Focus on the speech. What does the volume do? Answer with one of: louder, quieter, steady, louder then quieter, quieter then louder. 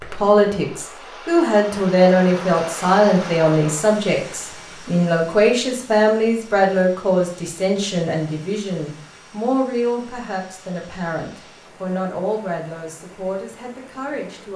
quieter.